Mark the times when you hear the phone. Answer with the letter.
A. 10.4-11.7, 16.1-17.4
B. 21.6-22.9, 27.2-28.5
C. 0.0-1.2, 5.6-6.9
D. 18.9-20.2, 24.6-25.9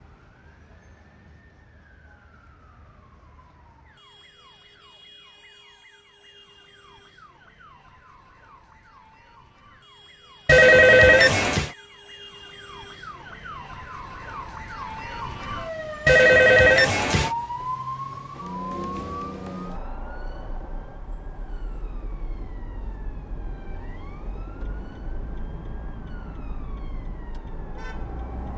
A.